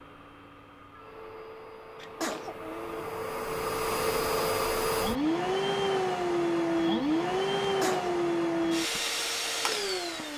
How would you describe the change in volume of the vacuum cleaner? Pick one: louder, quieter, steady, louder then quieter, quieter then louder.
louder.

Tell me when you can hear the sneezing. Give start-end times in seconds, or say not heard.
2.0-3.1, 7.6-8.2.